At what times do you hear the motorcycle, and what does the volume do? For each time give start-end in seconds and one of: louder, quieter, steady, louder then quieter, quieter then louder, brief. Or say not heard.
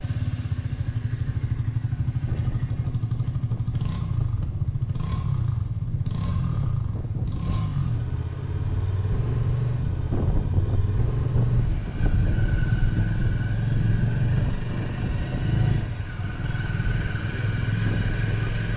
0.0-18.7 steady.